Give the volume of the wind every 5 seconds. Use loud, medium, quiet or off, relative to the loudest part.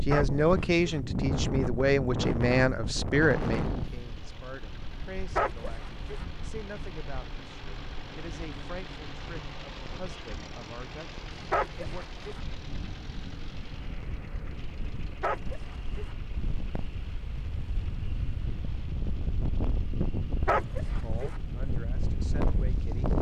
loud, quiet, quiet, medium, loud.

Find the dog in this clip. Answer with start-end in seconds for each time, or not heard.
0.1-1.0, 5.3-6.2, 11.5-12.4, 15.2-16.1, 20.4-21.4.